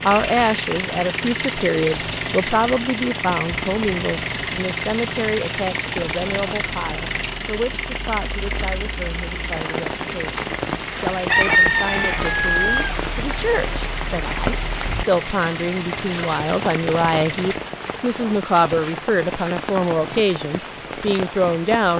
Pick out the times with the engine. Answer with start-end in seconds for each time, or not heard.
0.0-17.6.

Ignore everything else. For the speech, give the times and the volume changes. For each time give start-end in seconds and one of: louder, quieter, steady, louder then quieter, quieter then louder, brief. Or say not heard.
0.1-21.9 quieter then louder.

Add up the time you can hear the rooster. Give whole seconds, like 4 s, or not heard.
2 s.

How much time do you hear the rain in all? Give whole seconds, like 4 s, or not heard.
22 s.